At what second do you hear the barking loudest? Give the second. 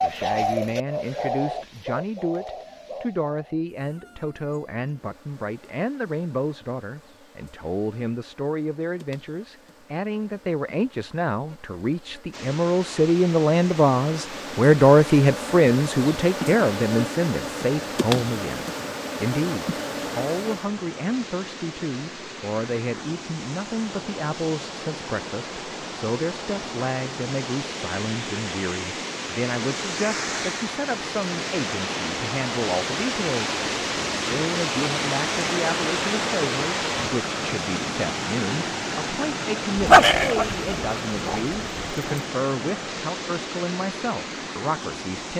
40 s.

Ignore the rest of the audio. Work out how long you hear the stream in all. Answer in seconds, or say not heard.
33 s.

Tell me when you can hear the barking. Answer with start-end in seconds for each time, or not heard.
39.8-42.2.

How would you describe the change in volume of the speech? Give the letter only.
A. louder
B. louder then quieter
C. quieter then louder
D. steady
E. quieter
B.